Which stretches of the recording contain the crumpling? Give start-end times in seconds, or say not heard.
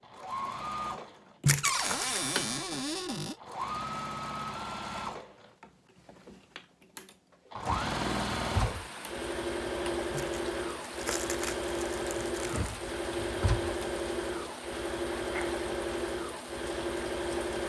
1.4-2.2, 10.1-12.8.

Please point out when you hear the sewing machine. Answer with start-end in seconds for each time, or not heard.
0.0-17.6.